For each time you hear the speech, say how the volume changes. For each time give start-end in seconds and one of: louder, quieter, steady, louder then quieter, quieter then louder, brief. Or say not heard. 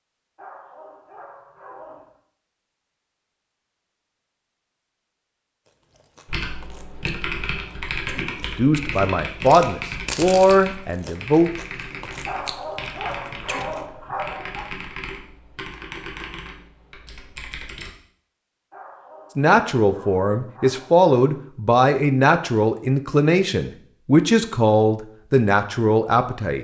8.6-11.5 brief
19.4-26.5 steady.